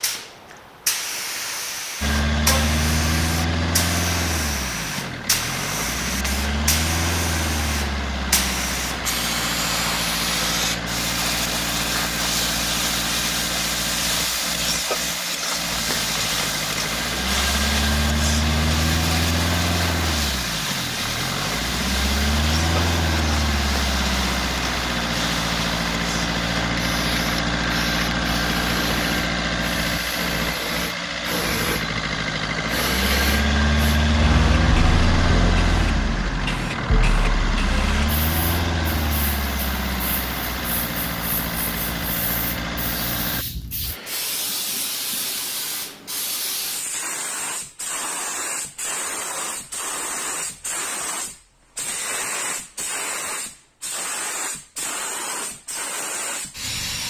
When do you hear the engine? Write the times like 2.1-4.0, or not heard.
2.0-43.5.